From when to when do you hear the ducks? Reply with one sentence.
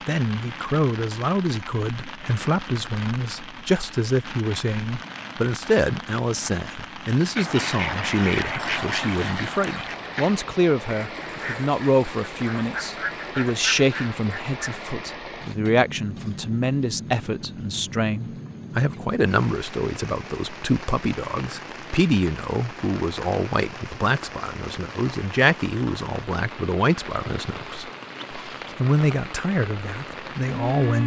The ducks can be heard from 7.3 to 14.8 s.